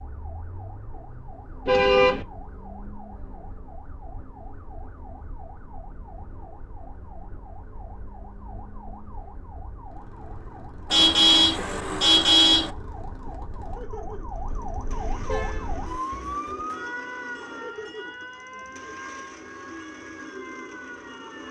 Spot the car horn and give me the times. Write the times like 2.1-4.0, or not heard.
1.6-2.2, 10.9-12.7, 14.3-15.7.